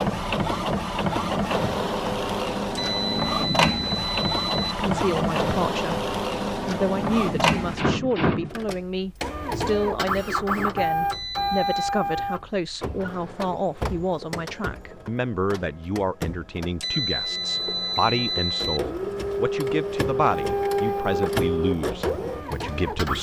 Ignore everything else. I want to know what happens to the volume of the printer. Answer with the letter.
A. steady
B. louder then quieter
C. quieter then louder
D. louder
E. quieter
C.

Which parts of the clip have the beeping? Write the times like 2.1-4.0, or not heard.
2.8-4.8, 11.1-11.8, 16.8-18.8.